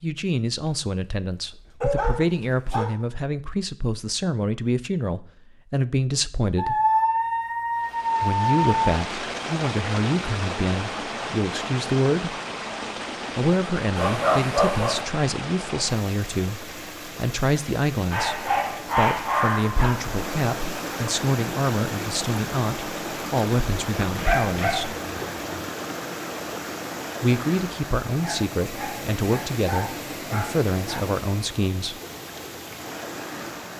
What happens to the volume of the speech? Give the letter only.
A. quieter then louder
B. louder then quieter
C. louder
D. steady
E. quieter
D.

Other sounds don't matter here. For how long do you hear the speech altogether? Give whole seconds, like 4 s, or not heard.
27 s.